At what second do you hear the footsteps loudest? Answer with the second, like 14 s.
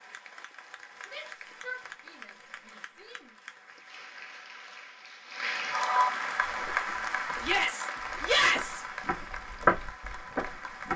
10 s.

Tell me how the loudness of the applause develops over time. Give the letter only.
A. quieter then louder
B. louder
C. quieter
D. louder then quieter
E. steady
D.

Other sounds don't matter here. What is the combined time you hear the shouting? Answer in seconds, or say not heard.
4 s.